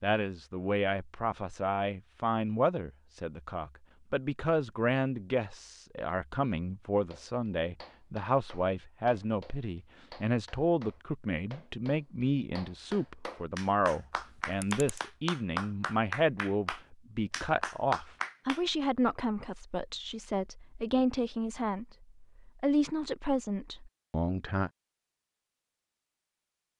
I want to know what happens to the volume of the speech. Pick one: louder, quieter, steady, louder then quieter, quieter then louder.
steady.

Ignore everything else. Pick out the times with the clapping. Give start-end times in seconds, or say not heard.
7.0-18.6.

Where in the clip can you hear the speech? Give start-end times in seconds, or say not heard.
0.0-24.7.